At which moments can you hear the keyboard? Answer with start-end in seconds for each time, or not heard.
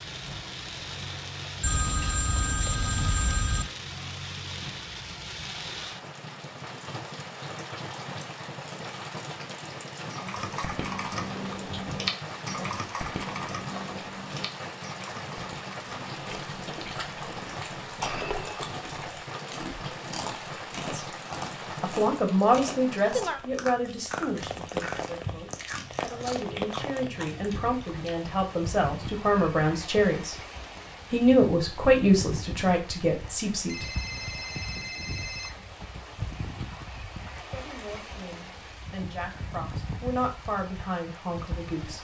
10.1-16.9.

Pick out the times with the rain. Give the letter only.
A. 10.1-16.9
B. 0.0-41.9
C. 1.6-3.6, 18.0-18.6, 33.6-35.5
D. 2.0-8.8
B.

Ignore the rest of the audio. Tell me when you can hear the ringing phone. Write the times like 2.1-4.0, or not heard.
1.6-3.6, 18.0-18.6, 33.6-35.5.